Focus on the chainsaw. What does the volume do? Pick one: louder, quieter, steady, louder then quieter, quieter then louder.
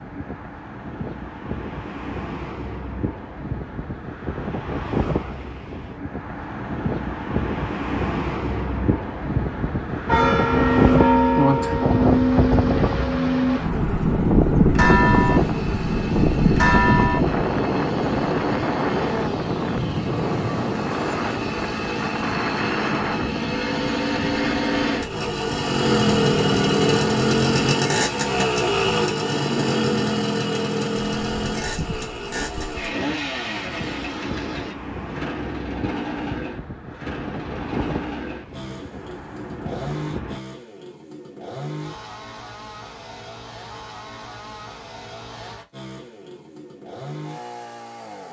louder then quieter.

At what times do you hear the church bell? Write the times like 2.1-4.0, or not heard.
10.1-17.4.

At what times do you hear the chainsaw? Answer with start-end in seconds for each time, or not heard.
15.1-48.2.